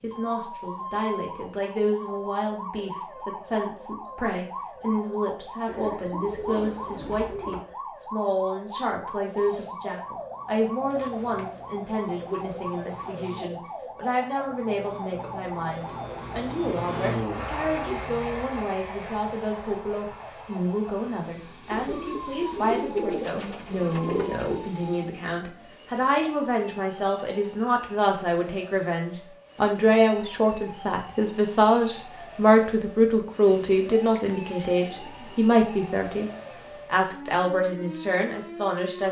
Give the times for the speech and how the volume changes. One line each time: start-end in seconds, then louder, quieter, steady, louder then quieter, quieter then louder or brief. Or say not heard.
0.0-39.0 louder.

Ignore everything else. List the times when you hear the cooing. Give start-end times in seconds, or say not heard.
5.7-7.7, 10.9-11.7, 21.7-24.6, 33.5-35.5.